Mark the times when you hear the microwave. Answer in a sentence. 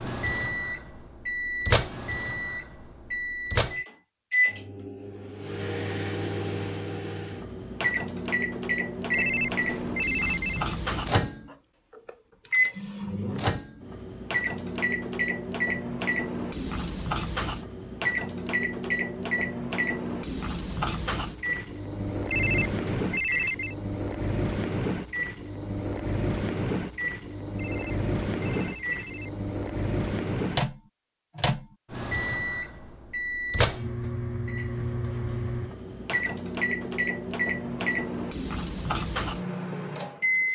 The microwave can be heard from 0.0 to 40.5 s.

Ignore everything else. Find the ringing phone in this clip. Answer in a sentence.
The ringing phone can be heard from 9.1 to 10.7 s, from 22.3 to 23.8 s and from 27.6 to 29.4 s.